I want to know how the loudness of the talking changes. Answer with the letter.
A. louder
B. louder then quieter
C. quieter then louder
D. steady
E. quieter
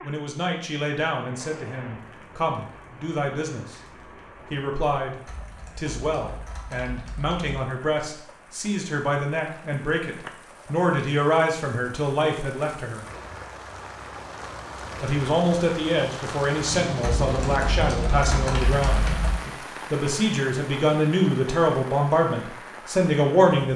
A.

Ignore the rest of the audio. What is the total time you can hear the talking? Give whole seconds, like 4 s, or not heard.
21 s.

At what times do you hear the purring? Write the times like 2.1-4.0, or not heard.
not heard.